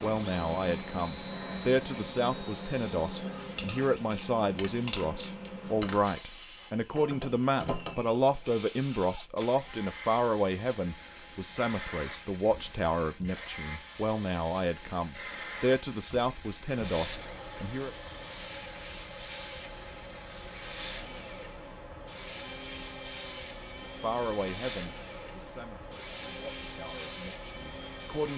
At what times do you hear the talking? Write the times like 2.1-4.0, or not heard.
0.0-17.9, 23.8-28.3.